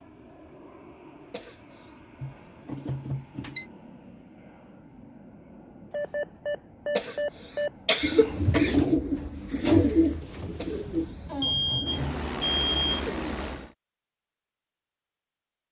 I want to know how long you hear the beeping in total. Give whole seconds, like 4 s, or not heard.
5 s.